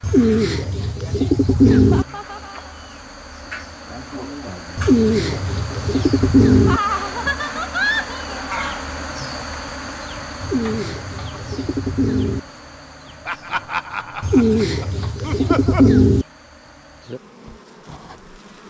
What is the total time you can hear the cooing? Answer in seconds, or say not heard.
8 s.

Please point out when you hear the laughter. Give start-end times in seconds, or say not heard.
1.7-2.8, 6.7-8.6, 13.2-15.9.